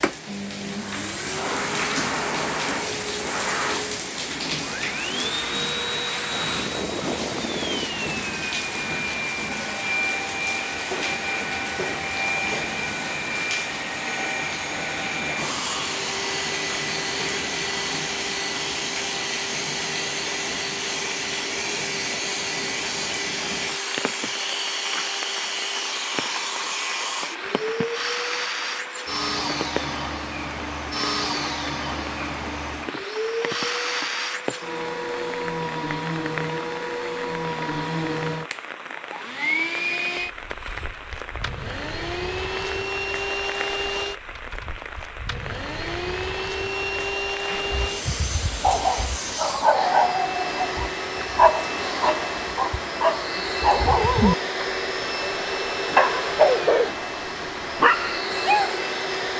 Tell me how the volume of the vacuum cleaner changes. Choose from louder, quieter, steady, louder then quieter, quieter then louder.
steady.